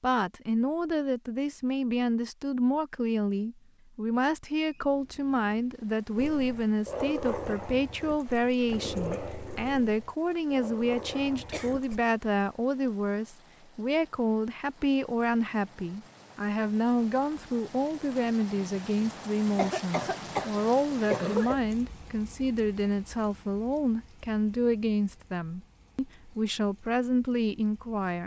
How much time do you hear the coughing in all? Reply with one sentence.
You can hear the coughing for 2 seconds altogether.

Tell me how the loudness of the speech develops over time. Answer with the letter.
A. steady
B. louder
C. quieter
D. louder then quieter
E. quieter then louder
A.